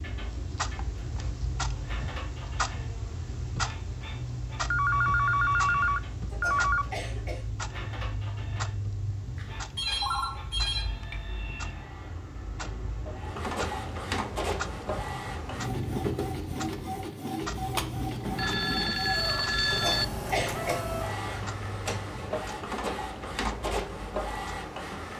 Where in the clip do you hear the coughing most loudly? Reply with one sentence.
The volume of the coughing peaks at 20 seconds.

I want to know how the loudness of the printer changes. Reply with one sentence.
The loudness of the printer goes up.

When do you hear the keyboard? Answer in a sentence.
You can't hear the keyboard here.